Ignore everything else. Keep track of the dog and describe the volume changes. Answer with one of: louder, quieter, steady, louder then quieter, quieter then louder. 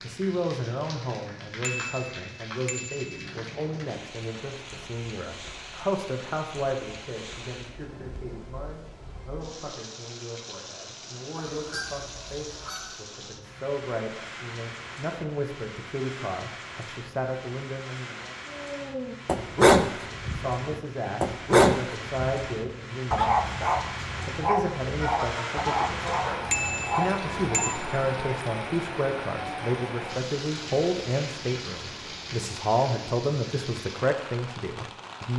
quieter.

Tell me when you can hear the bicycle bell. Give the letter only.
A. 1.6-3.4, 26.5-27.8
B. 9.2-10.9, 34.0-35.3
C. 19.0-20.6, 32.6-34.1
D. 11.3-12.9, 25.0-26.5
A.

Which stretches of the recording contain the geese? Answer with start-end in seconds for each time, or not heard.
11.3-12.9, 25.0-26.5.